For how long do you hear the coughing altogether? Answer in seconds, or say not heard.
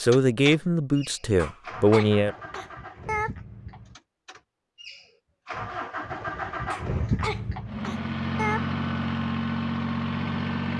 4 s.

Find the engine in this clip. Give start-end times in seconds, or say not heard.
0.0-10.7.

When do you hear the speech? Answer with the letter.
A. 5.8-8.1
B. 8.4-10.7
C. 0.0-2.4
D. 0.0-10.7
C.